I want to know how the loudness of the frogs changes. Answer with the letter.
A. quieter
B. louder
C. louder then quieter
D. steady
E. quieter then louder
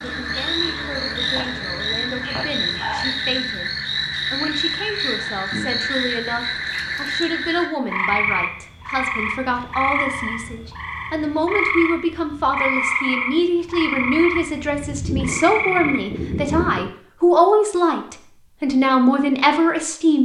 D.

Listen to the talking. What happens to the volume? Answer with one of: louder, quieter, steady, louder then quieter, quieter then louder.
louder.